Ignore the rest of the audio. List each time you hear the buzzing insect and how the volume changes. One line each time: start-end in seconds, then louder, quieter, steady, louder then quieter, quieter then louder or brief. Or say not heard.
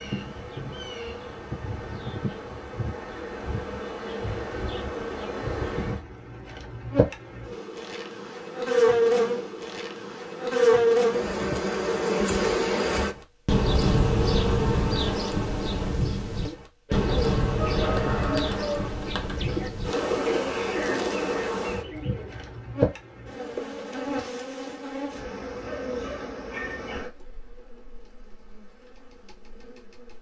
0.0-30.1 louder then quieter.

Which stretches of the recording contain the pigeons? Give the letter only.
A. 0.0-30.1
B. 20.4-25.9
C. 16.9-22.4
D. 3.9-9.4
C.